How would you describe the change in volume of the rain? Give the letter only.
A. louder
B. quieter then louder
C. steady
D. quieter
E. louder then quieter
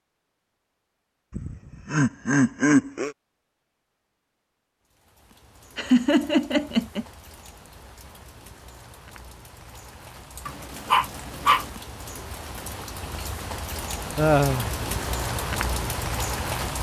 A.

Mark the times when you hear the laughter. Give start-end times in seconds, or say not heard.
1.3-3.1, 5.8-7.0, 14.2-14.7.